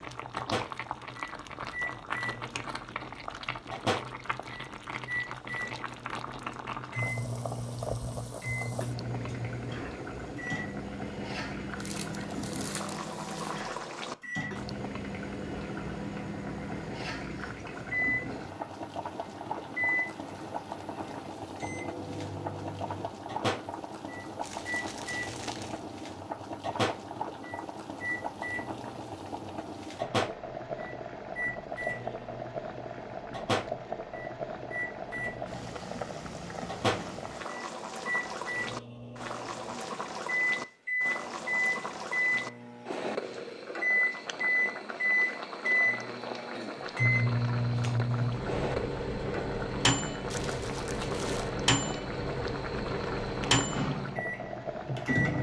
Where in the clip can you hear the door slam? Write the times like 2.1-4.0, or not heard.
not heard.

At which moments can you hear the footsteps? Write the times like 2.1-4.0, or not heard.
not heard.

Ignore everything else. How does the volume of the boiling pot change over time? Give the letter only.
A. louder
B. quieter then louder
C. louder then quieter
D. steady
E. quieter
D.